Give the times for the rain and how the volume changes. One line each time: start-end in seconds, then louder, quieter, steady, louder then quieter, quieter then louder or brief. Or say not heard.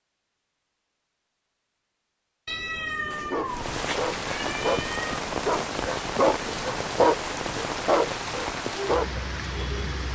3.5-10.1 steady.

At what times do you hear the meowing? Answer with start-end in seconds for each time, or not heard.
2.5-5.2.